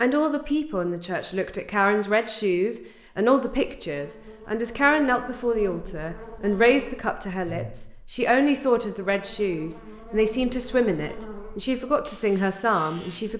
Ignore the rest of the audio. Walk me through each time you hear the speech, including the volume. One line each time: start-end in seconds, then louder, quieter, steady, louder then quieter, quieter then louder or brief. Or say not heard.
0.0-13.3 steady.